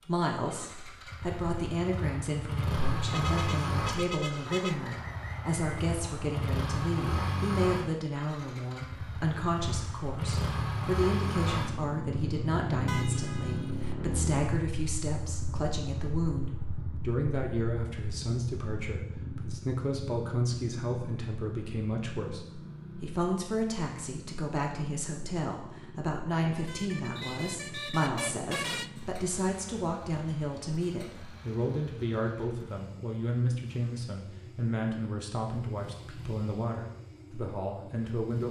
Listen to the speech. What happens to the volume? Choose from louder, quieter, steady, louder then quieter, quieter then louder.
steady.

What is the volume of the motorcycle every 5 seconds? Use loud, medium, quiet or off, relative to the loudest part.
loud, loud, loud, medium, medium, quiet, quiet, quiet.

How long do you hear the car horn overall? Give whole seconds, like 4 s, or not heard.
5 s.